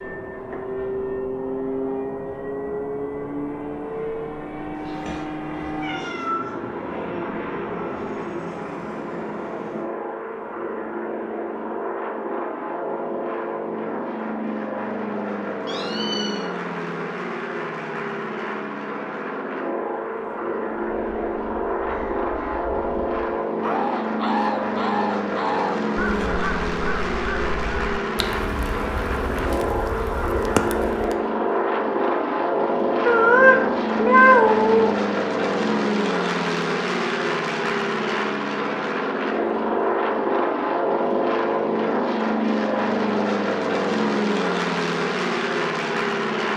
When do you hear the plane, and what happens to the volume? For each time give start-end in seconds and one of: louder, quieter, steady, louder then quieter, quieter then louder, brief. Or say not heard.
0.0-46.5 louder.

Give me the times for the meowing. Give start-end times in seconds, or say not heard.
4.8-6.5, 15.7-16.4, 33.0-34.9.